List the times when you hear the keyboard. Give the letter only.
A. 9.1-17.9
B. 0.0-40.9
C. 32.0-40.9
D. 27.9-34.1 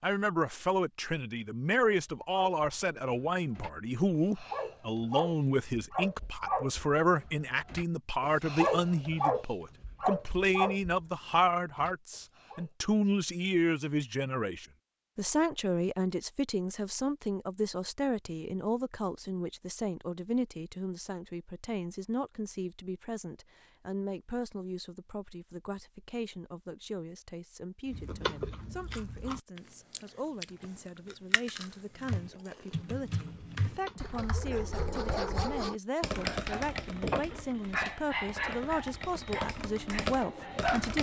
C.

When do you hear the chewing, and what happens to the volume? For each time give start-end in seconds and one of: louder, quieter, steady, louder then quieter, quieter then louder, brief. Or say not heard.
27.9-34.1 quieter.